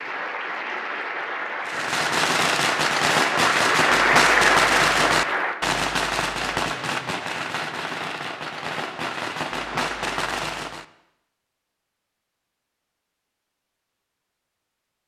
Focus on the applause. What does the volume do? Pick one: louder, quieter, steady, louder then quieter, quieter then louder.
louder.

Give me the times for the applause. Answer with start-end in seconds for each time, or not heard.
0.0-5.5.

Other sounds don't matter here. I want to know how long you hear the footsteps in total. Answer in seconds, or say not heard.
not heard.